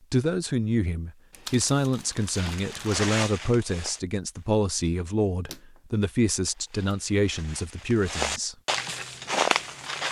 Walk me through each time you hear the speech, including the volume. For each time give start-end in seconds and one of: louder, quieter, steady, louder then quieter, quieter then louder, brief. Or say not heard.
0.1-8.6 steady.